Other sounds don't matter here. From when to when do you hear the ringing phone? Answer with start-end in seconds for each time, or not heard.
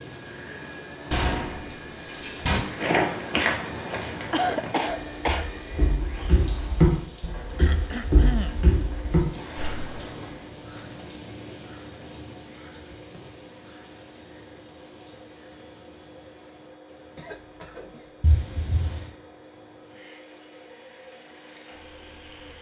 not heard.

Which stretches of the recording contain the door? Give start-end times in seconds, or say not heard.
1.1-2.6, 9.3-11.1, 18.2-19.1.